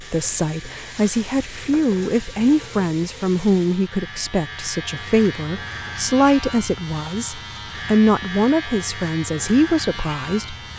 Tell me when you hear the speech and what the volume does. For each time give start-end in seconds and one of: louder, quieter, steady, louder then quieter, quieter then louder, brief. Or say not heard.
0.0-10.6 steady.